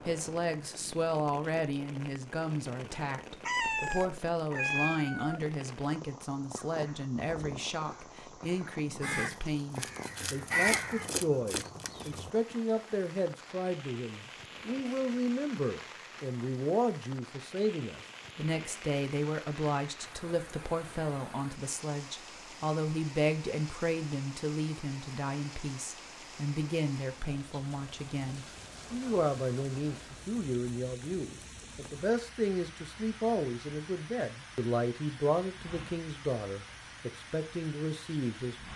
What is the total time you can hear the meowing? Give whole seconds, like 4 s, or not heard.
2 s.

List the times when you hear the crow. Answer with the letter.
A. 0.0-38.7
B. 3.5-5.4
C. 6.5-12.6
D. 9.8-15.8
C.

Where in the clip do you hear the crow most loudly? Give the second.
11 s.